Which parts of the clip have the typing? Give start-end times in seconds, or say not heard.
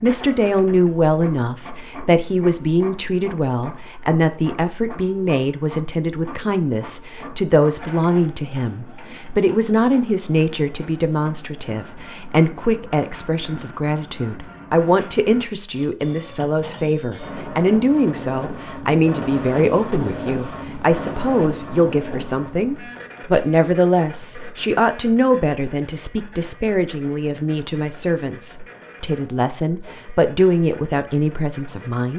not heard.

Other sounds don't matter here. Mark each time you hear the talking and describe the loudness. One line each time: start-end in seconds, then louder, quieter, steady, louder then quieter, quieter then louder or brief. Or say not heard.
0.0-32.1 steady.